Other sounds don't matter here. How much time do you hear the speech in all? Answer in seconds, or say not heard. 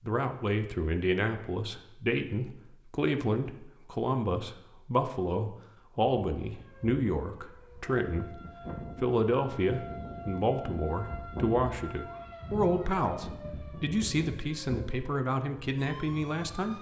16 s.